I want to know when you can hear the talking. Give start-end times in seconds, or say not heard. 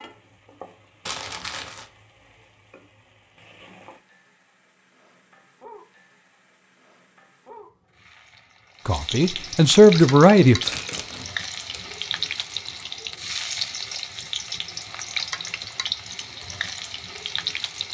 8.8-10.6.